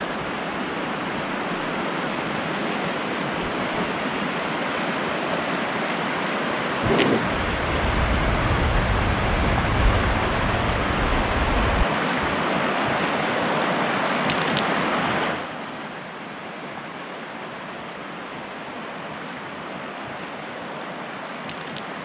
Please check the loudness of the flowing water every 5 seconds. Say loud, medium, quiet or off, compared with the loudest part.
loud, loud, loud, medium, medium.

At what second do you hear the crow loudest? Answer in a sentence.
The loudest moment of the crow is at 7 seconds.